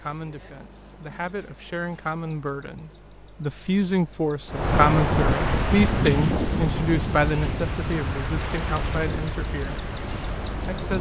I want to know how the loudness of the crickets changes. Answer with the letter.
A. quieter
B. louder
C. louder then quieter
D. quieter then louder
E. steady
B.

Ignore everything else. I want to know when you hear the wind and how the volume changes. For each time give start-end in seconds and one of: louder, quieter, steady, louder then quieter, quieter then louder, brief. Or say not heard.
4.5-10.9 quieter.